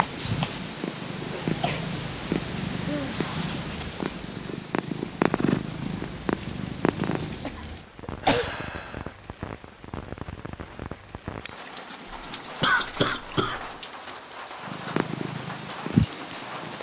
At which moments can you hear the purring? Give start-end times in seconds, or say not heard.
0.0-7.5, 14.6-16.7.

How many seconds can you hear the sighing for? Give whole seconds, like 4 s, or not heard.
2 s.